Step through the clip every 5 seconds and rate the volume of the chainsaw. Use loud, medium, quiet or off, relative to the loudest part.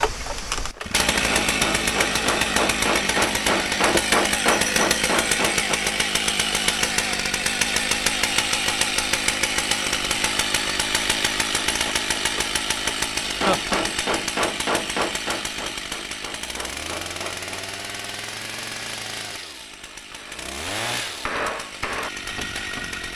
loud, loud, loud, medium, medium.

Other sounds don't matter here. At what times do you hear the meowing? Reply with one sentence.
You can't hear the meowing here.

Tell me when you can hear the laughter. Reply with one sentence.
You can hear the laughter from 13.2 to 13.8 s.